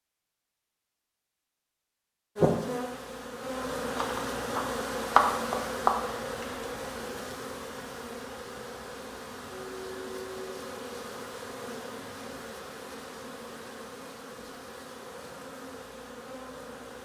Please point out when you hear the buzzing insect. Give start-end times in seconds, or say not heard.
2.4-17.0.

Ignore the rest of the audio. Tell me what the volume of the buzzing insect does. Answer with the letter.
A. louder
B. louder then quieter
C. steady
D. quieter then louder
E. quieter
E.